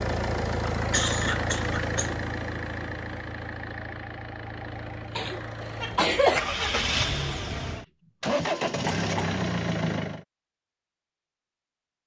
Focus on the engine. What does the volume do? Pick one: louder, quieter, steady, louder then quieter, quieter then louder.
quieter then louder.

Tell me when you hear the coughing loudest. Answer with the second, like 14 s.
6 s.